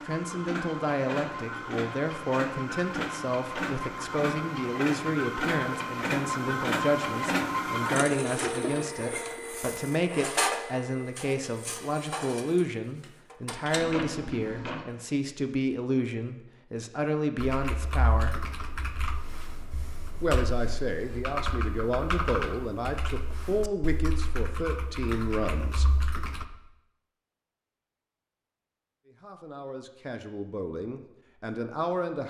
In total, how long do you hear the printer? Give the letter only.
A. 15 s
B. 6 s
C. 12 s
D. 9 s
A.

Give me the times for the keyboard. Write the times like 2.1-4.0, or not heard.
17.4-26.4.